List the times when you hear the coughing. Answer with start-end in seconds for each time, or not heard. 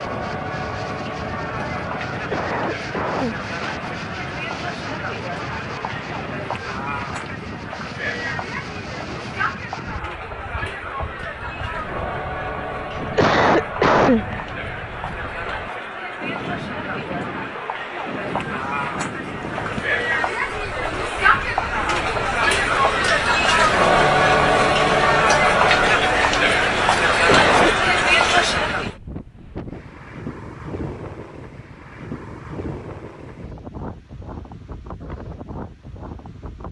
2.1-3.4, 12.9-14.2, 27.2-27.8.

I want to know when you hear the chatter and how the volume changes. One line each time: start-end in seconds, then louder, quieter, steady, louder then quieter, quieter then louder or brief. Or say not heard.
0.0-28.9 louder.